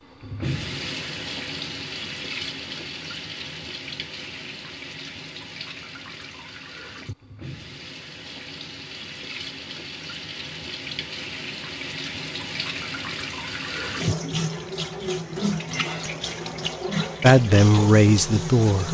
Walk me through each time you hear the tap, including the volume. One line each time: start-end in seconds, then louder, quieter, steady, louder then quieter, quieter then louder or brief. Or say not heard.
0.0-18.8 quieter then louder.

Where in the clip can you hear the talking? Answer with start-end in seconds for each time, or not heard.
17.2-18.8.